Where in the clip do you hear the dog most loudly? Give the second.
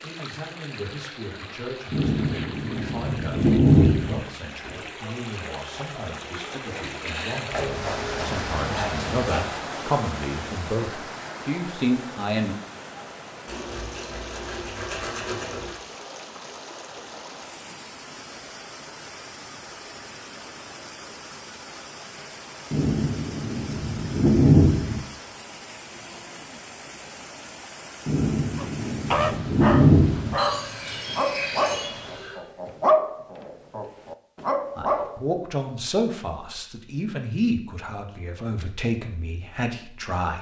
33 s.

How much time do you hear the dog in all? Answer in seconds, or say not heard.
7 s.